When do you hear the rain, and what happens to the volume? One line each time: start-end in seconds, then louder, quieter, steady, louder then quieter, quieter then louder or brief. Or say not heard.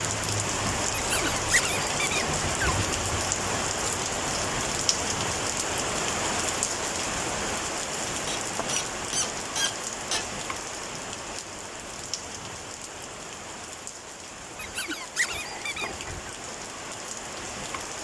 0.0-17.9 quieter.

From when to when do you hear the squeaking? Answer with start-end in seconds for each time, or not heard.
0.9-3.2, 8.2-10.2, 14.6-16.3.